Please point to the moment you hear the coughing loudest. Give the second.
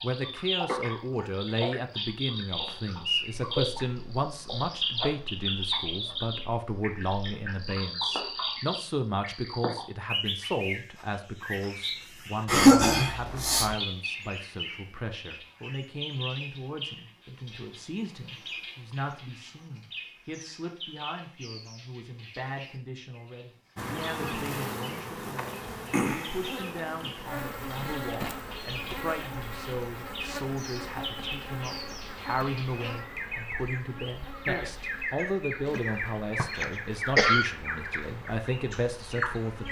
13 s.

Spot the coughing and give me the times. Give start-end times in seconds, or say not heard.
12.4-13.8, 35.2-37.5.